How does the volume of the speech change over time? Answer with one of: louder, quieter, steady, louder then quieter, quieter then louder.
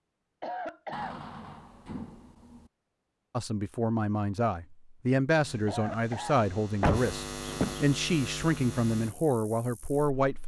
steady.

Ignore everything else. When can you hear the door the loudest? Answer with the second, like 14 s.
7 s.